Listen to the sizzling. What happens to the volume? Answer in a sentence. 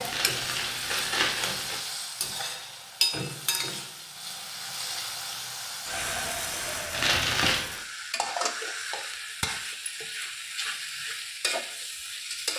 The loudness of the sizzling stays about the same.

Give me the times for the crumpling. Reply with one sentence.
The crumpling can be heard from 0.0 to 1.8 s and from 6.9 to 7.7 s.